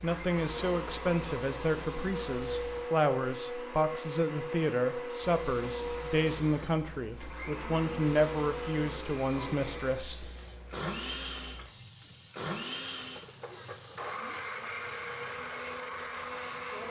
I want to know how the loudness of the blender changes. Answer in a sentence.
The volume of the blender stays about the same.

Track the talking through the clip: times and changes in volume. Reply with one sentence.
The talking can be heard from 0.0 to 10.3 s, at a steady volume.